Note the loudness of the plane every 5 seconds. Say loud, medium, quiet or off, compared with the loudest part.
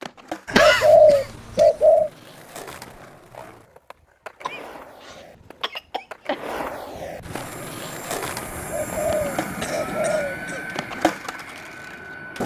off, loud, loud.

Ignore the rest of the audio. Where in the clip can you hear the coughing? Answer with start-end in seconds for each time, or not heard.
0.5-1.7, 4.4-6.4, 9.6-10.7.